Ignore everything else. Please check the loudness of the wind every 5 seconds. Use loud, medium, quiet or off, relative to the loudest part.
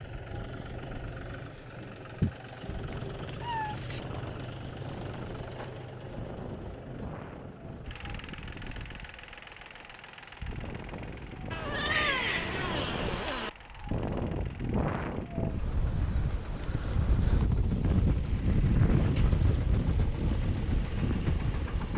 quiet, quiet, medium, loud, loud.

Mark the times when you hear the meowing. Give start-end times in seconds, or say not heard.
2.2-4.0, 11.5-13.5.